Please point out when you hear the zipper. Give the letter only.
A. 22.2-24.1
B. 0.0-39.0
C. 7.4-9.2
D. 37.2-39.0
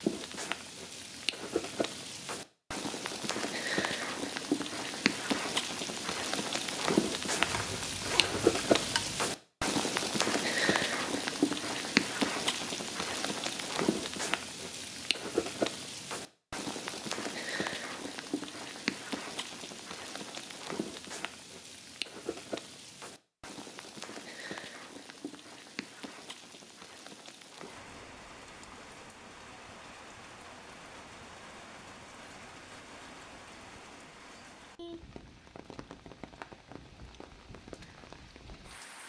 C.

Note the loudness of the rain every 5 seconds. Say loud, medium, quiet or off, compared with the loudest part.
medium, loud, loud, medium, quiet, quiet, quiet, quiet.